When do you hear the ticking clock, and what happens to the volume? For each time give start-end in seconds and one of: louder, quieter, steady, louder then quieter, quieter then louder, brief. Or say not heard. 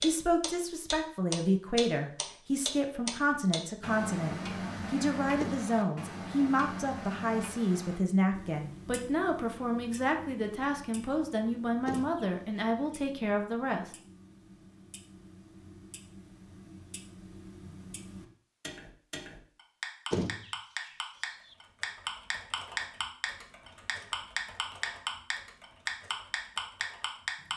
0.0-27.5 quieter then louder.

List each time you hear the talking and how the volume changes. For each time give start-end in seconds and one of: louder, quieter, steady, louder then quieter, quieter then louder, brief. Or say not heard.
0.0-13.9 steady.